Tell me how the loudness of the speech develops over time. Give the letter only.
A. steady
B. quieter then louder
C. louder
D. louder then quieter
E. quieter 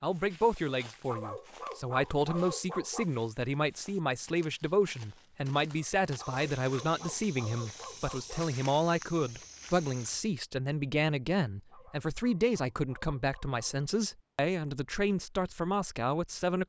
A.